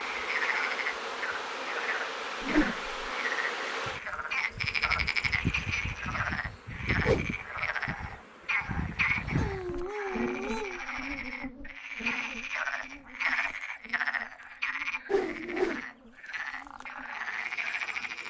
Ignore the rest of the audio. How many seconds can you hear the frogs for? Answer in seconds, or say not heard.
18 s.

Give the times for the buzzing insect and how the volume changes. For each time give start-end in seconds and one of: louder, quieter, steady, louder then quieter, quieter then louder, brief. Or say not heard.
0.0-18.2 quieter.